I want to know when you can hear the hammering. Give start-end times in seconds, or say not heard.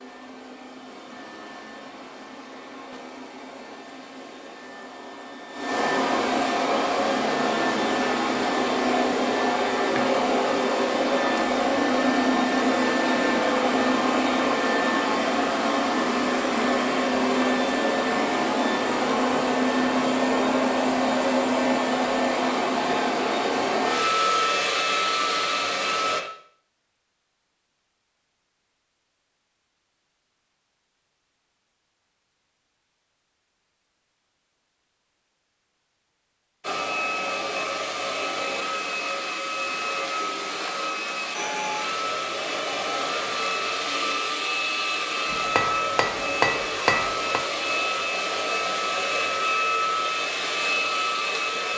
45.2-47.5.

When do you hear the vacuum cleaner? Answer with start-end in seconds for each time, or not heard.
0.0-26.2, 36.6-51.7.